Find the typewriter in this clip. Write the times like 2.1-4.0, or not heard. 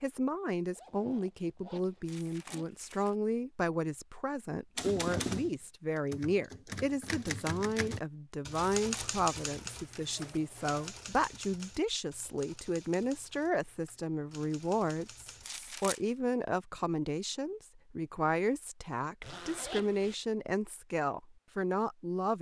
4.8-15.5.